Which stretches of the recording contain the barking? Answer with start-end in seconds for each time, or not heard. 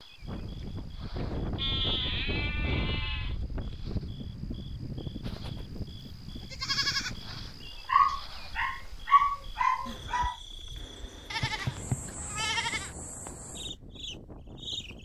7.8-10.3.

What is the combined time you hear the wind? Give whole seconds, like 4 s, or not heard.
15 s.